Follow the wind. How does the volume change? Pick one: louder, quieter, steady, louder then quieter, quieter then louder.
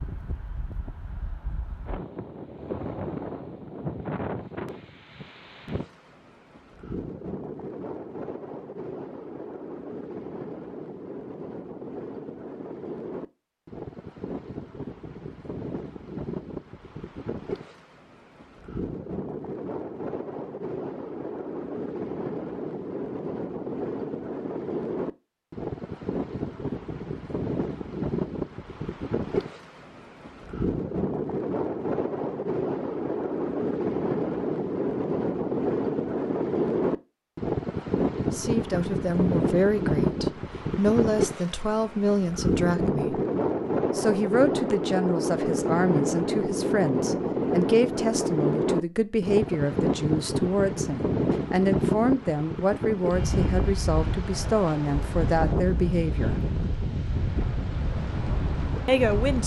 louder.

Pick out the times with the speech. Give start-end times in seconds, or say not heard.
38.3-43.2, 44.0-56.4, 58.9-59.4.